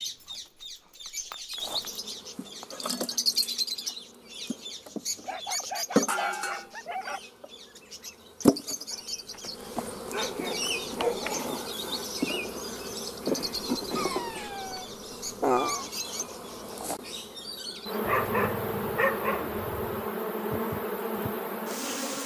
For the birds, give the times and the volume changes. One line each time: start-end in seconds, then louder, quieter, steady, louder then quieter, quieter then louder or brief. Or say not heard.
0.0-16.8 quieter.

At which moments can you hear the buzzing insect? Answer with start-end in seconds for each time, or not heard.
1.6-22.2.